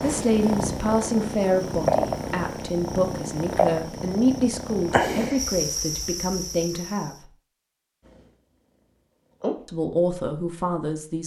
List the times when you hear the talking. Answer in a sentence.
The talking can be heard from 0.0 to 7.3 s and from 9.7 to 11.2 s.